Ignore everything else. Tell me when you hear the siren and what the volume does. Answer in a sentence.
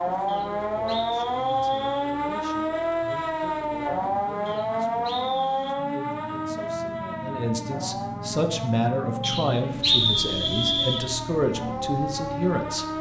The siren can be heard from 0.0 to 12.9 s, getting quieter.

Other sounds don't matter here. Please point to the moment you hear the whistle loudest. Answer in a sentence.
The loudest moment of the whistle is at 10 seconds.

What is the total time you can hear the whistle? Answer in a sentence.
You can hear the whistle for 5 seconds altogether.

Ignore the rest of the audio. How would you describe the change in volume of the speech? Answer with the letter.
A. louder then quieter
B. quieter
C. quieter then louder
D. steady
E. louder
E.